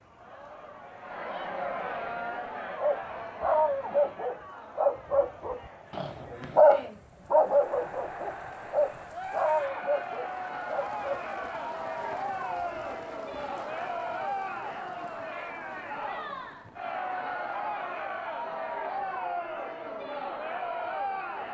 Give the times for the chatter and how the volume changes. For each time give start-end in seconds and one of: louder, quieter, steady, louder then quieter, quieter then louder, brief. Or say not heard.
0.0-21.4 quieter then louder.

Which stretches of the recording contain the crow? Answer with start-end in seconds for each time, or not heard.
not heard.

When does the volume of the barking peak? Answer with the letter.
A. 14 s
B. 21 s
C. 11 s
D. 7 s
D.